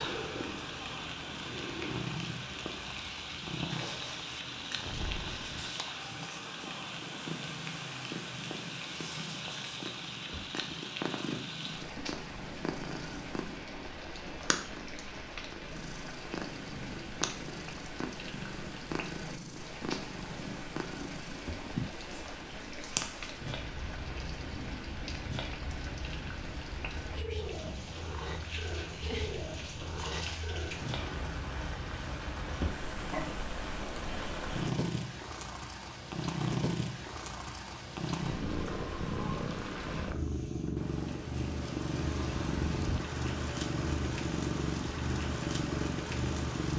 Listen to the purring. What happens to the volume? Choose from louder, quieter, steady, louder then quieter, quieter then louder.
louder.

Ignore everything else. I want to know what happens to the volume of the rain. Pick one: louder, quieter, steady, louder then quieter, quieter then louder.
steady.